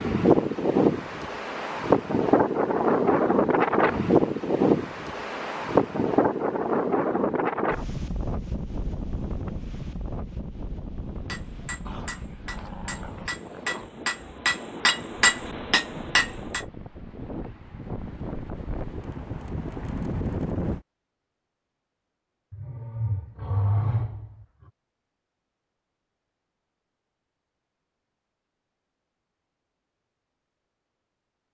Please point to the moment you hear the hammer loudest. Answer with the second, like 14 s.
15 s.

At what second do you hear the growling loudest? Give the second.
24 s.